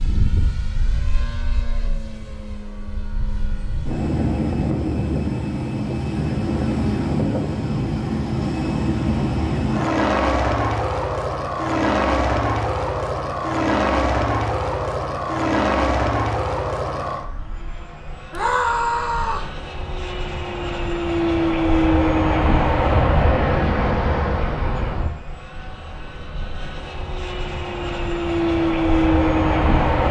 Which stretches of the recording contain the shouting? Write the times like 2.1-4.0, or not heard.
18.3-19.5.